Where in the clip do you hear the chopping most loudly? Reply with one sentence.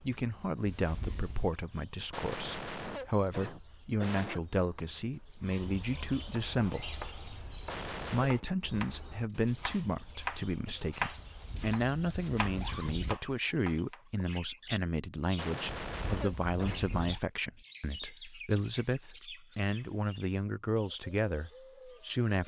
The loudest moment of the chopping is at 11 seconds.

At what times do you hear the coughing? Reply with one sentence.
You can hear the coughing from 2.1 to 4.5 s, from 7.7 to 8.3 s and from 15.3 to 16.9 s.